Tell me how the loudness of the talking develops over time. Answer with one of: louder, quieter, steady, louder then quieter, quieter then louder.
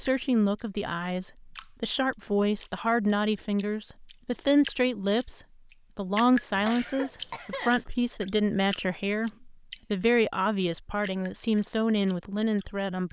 steady.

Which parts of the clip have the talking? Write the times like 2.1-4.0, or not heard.
0.0-13.0.